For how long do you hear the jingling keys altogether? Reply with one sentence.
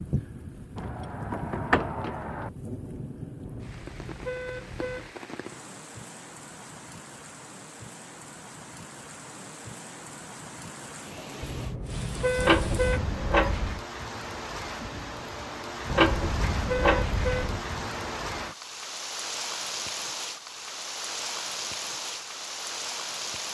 The jingling keys can be heard for 5 seconds in total.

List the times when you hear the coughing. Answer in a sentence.
You can't hear the coughing here.